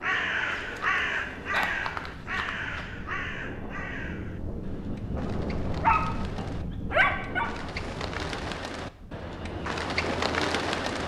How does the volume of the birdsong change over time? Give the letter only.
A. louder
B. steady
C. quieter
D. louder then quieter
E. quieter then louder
E.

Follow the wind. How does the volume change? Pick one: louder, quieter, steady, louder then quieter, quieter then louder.
louder then quieter.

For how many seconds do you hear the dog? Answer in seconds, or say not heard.
4 s.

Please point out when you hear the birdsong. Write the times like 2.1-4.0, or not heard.
0.0-11.0.